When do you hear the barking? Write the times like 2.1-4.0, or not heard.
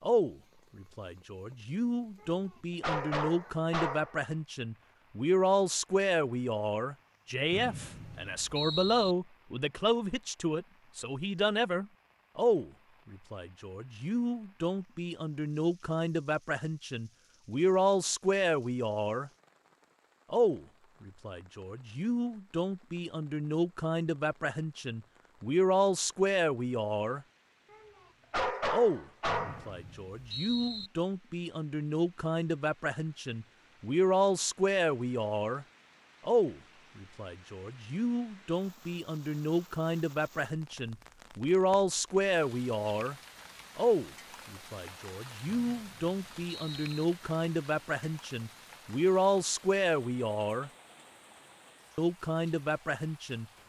2.2-4.2, 27.7-29.7.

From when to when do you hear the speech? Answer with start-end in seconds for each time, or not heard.
0.0-19.3, 20.3-27.2, 28.7-35.6, 36.2-43.1, 43.8-50.7, 52.0-53.5.